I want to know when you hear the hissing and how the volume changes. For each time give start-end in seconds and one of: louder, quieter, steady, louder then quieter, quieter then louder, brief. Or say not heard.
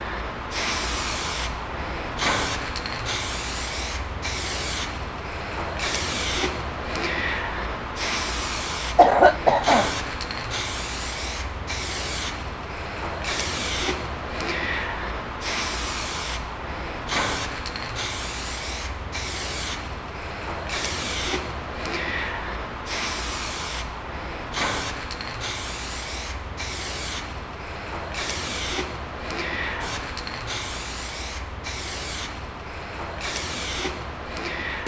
0.0-34.8 steady.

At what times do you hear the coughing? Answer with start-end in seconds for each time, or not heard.
8.9-9.9.